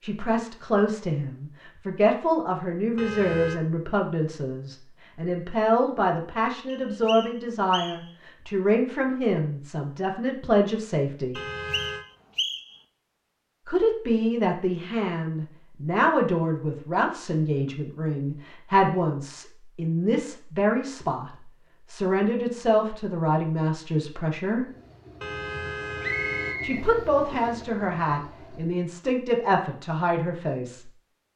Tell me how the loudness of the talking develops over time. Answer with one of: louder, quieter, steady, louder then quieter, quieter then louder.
steady.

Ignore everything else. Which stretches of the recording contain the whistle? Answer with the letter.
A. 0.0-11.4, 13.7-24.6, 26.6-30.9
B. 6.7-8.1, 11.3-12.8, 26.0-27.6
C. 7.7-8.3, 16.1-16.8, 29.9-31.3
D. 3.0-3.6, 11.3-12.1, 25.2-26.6
B.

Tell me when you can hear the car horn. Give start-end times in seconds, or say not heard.
3.0-3.6, 11.3-12.1, 25.2-26.6.